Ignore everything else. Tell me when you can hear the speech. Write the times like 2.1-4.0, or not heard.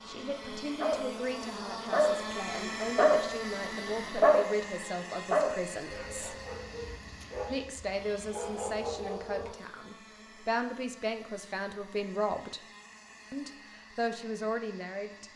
0.1-6.3, 7.5-12.6, 13.3-15.3.